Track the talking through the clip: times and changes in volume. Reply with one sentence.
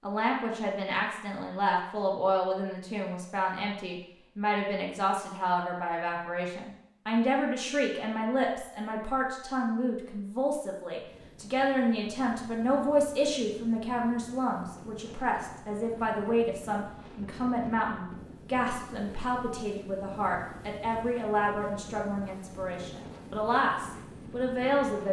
You can hear the talking from 0.0 to 25.0 s, at a steady volume.